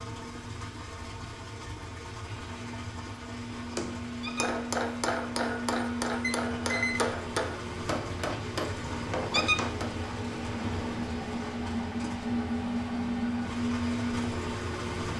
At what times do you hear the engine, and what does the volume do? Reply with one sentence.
The engine can be heard from 0.0 to 15.1 s, getting louder.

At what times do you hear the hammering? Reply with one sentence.
The hammering can be heard from 3.8 to 9.9 s.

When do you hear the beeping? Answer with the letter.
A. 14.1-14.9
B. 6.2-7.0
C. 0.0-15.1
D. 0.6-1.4
B.